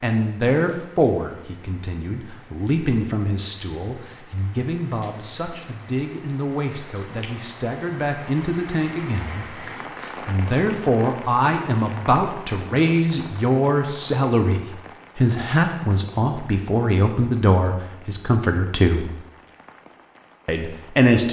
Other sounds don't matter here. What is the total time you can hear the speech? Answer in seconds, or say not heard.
20 s.